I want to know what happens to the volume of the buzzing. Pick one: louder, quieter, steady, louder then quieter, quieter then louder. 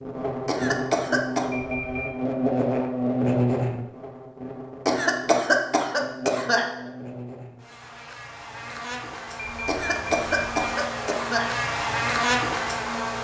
quieter then louder.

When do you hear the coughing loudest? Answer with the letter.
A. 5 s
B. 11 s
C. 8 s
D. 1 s
A.